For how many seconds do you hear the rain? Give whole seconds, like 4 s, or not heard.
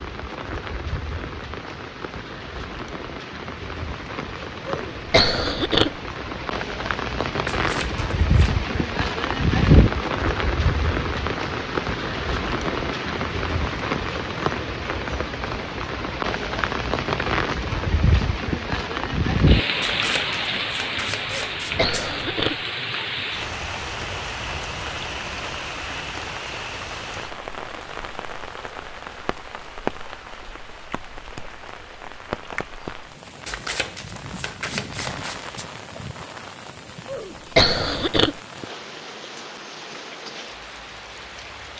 42 s.